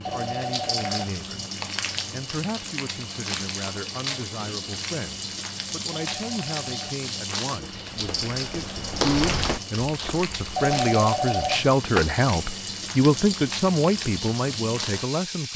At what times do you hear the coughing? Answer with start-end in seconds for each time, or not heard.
not heard.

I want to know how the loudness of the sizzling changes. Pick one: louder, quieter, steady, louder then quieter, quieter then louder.
steady.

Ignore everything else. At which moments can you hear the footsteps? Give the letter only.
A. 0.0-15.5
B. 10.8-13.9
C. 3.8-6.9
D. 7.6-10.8
D.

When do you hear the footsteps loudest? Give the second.
9 s.